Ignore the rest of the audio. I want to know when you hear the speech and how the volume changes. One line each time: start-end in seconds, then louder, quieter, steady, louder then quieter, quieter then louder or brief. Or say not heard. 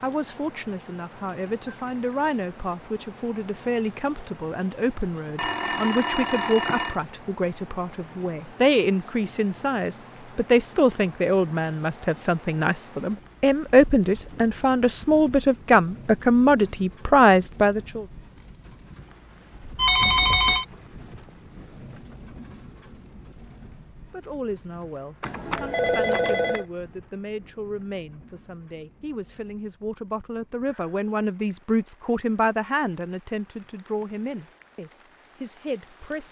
0.0-18.1 louder
24.1-36.2 louder then quieter.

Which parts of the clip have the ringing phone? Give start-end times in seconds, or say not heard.
5.3-7.0, 19.8-20.6, 25.2-26.6.